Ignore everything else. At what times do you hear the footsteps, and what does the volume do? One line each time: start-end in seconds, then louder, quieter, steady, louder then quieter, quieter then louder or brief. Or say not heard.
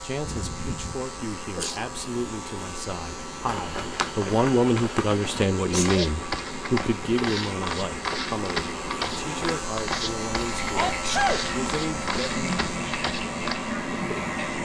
3.3-13.6 steady.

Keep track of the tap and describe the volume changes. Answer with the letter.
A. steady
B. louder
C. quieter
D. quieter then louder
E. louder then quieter
B.